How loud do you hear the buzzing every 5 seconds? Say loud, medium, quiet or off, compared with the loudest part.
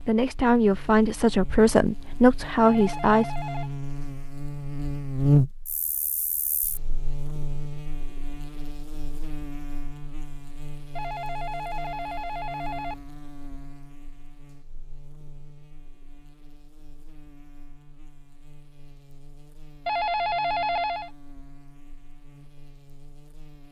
medium, loud, quiet, quiet, quiet.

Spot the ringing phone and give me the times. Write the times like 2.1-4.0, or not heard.
2.6-3.7, 10.9-12.9, 19.9-21.1.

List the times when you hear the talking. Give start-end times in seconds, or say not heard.
0.1-3.4.